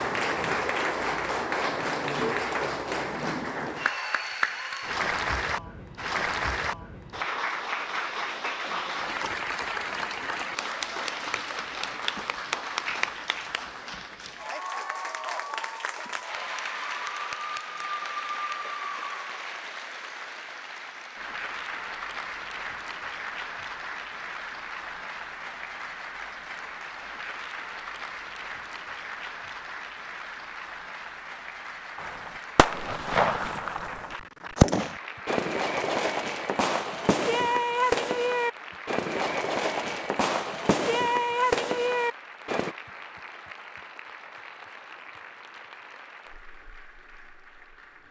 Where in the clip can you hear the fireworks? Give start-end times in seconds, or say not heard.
31.9-42.8.